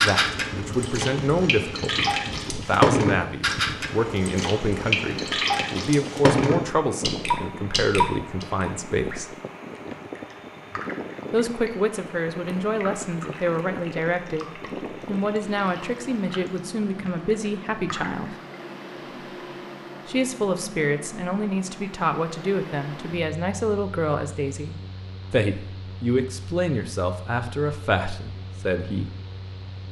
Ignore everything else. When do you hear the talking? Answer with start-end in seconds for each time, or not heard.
0.0-9.3, 11.3-18.4, 20.1-29.1.